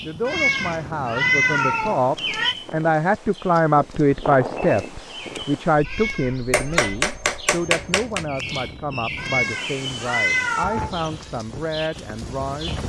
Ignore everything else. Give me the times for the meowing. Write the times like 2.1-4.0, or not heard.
0.2-2.5, 5.8-7.0, 9.2-11.2.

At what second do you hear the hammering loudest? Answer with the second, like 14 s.
7 s.